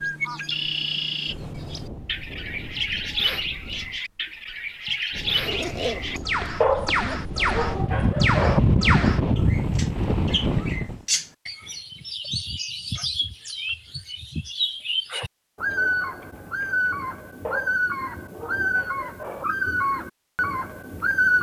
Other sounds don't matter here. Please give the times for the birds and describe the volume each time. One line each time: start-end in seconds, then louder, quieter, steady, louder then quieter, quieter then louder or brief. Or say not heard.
0.0-21.3 steady.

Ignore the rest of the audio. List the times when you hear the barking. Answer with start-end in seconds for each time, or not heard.
6.6-8.6, 17.4-19.4.